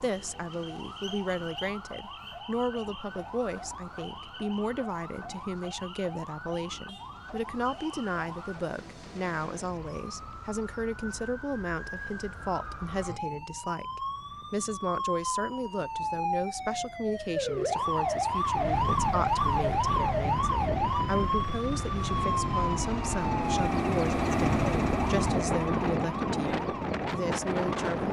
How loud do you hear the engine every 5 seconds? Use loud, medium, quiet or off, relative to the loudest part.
off, off, off, quiet, loud, loud.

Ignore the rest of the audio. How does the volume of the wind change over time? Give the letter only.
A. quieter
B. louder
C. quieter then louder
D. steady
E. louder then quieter
B.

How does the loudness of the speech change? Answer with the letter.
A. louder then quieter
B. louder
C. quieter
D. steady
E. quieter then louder
D.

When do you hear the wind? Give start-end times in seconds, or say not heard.
0.0-28.0.